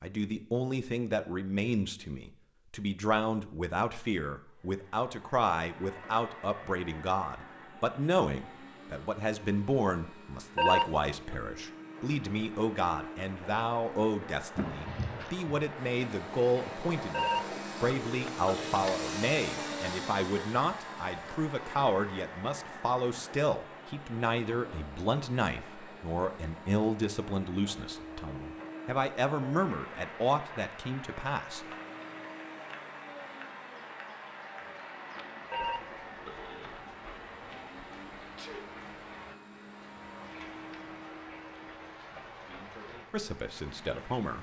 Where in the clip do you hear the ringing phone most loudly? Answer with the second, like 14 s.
11 s.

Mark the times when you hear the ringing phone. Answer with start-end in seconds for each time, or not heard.
10.6-11.3, 17.1-18.8, 35.5-36.7.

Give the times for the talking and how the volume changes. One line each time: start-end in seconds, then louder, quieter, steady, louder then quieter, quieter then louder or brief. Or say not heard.
0.0-31.6 steady
42.5-44.3 brief.